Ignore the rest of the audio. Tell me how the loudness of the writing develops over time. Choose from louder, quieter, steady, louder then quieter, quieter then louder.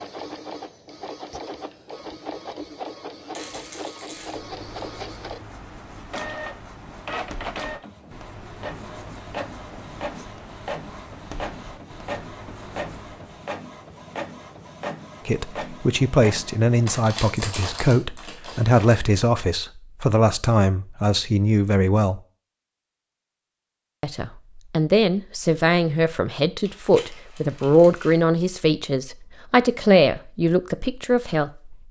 steady.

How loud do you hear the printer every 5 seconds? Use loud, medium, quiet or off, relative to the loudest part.
loud, loud, loud, loud, off, off, off.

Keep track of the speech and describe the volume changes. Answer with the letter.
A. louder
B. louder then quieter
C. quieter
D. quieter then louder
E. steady
E.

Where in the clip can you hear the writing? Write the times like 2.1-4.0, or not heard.
4.2-13.5.